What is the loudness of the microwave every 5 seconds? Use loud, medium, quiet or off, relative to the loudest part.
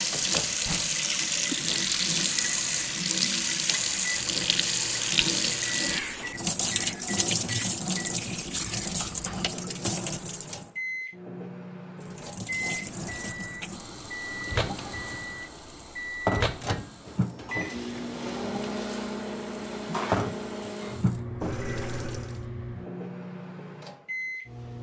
medium, medium, loud, loud, loud.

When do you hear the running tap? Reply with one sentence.
The running tap can be heard from 0.0 to 10.7 s and from 12.0 to 22.4 s.